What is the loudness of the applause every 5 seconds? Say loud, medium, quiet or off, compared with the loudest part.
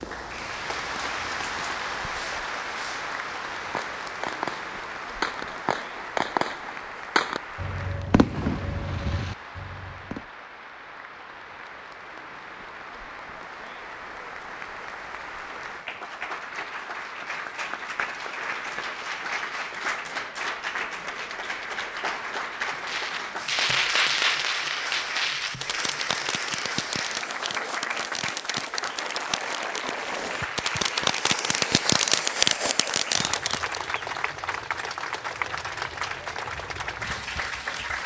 loud, medium, medium, loud, loud, loud, loud, loud.